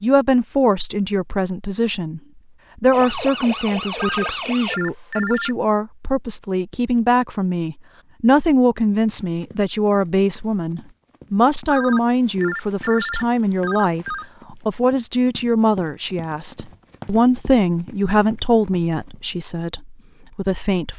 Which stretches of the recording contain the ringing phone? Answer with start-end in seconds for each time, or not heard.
4.0-5.5, 11.7-14.2.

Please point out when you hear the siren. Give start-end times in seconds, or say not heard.
2.9-4.8.